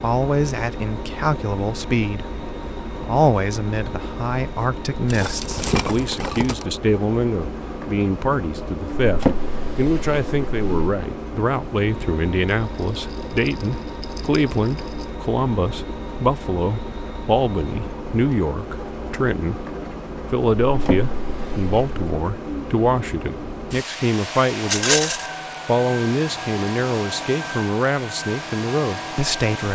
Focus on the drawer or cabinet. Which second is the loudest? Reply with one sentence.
The loudest moment of the drawer or cabinet is at 9 seconds.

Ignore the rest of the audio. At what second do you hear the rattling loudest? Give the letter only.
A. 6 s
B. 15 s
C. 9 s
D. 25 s
D.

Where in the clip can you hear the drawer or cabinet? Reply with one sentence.
You can hear the drawer or cabinet from 9.0 to 10.9 s and from 20.6 to 22.1 s.